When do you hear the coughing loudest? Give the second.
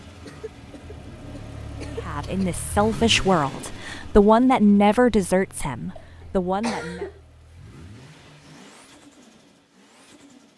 7 s.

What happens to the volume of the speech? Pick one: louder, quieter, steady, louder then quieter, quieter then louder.
louder then quieter.